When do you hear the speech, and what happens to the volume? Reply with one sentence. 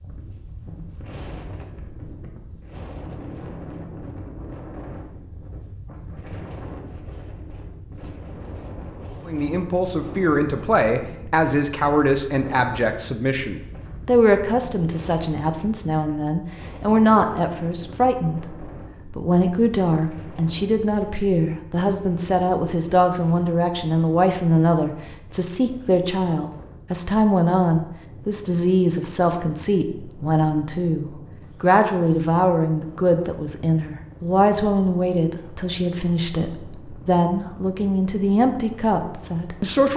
The speech can be heard from 9.2 to 39.9 s, at a steady volume.